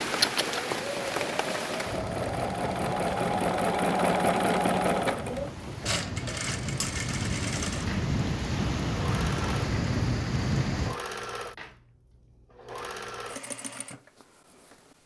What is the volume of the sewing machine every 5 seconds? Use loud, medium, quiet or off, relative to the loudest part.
loud, medium, quiet.